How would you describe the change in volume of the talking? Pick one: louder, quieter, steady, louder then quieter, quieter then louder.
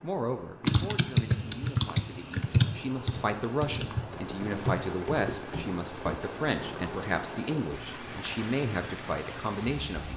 louder.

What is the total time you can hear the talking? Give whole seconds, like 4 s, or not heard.
10 s.